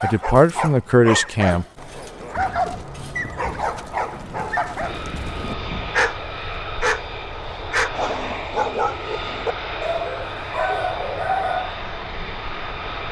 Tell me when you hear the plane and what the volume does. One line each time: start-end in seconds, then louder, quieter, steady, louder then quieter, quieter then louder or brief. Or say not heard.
1.8-13.0 louder.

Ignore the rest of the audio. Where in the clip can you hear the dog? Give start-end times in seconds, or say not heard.
0.0-11.8.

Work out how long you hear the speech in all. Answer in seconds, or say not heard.
2 s.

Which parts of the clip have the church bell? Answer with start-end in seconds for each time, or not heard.
not heard.